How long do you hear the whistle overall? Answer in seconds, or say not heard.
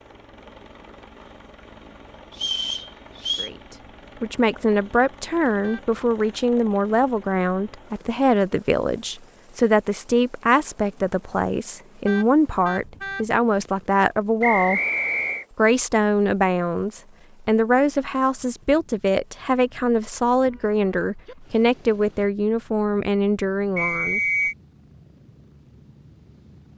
3 s.